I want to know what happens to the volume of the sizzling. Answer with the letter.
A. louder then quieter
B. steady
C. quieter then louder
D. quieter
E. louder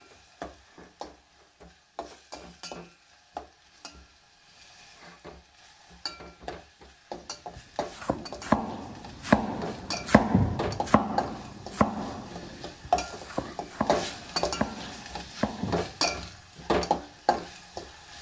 E.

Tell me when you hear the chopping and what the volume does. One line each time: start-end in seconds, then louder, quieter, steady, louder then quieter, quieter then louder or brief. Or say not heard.
7.5-16.0 quieter.